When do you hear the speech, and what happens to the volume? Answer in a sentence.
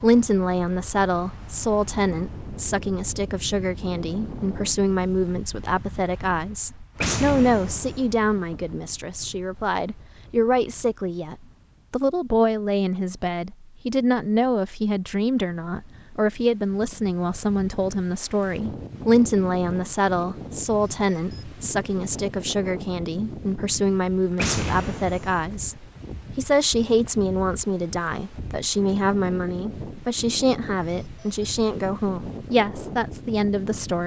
The speech can be heard from 0.0 to 34.0 s, at a steady volume.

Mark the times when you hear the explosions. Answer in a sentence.
The explosions can be heard from 7.0 to 8.1 s and from 24.4 to 25.4 s.